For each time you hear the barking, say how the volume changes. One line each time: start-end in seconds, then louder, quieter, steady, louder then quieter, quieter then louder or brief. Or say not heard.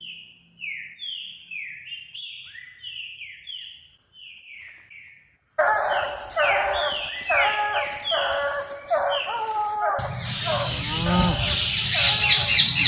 5.5-12.7 quieter.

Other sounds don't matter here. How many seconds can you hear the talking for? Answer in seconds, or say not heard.
not heard.